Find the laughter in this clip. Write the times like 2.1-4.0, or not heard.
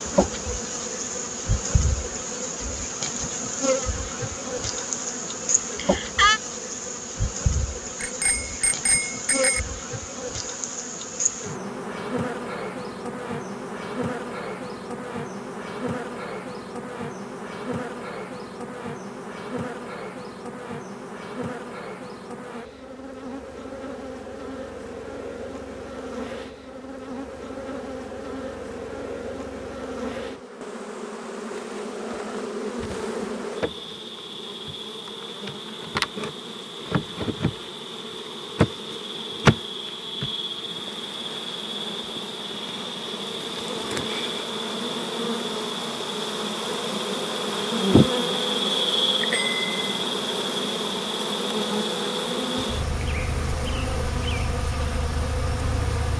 5.8-6.4.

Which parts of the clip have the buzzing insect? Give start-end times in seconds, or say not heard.
0.0-56.1.